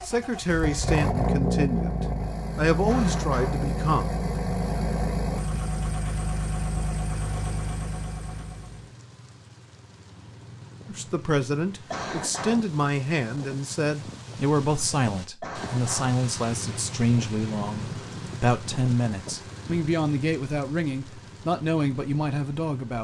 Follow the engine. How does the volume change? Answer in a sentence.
The loudness of the engine goes down.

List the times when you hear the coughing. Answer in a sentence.
The coughing can be heard from 2.9 to 3.6 s, from 11.9 to 12.7 s and from 15.4 to 16.2 s.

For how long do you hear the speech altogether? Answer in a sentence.
You can hear the speech for 16 seconds altogether.